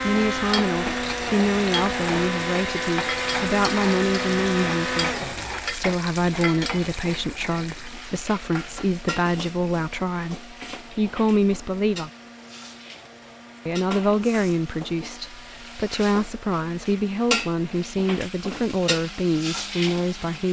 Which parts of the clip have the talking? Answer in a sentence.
The talking can be heard from 0.0 to 12.1 s and from 13.7 to 20.4 s.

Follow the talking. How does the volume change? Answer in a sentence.
The volume of the talking stays about the same.